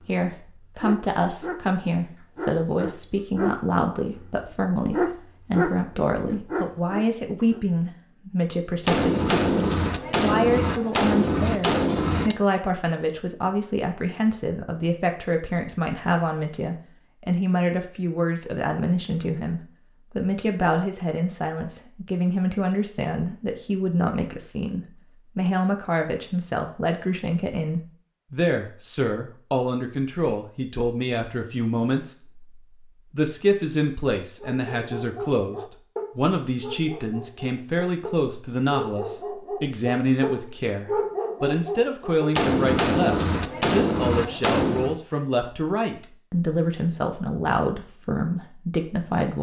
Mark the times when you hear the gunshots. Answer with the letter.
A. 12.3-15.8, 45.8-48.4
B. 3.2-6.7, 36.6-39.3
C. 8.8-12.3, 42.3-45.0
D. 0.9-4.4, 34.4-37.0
C.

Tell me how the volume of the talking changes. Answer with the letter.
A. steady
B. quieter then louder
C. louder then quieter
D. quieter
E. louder
A.